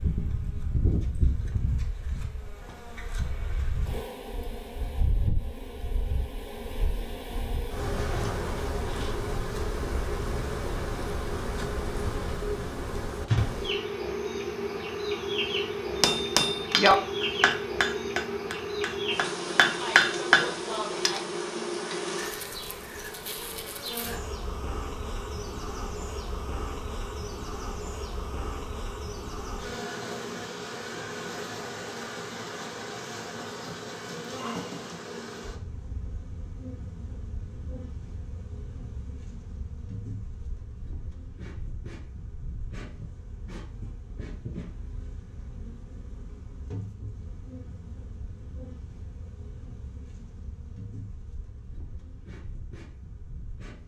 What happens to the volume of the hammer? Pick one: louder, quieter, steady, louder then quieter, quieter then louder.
quieter then louder.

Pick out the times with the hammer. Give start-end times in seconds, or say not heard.
16.0-21.2.